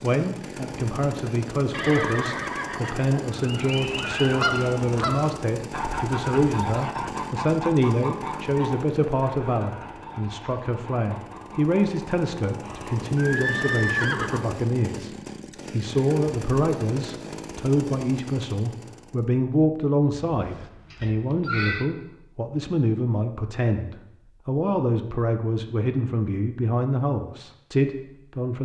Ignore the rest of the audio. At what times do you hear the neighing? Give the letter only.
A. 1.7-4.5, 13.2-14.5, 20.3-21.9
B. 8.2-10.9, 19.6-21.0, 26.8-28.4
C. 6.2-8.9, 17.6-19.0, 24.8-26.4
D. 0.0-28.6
A.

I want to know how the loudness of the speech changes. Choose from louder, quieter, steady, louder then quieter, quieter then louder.
steady.